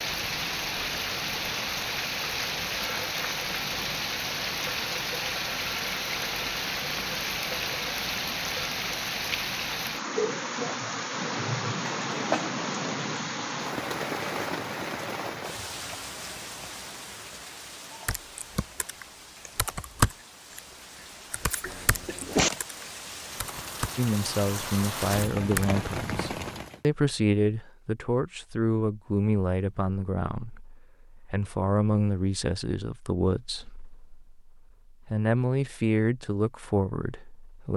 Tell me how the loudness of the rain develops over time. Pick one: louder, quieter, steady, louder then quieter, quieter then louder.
quieter then louder.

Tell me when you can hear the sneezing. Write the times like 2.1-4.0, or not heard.
11.8-12.4, 21.6-22.5.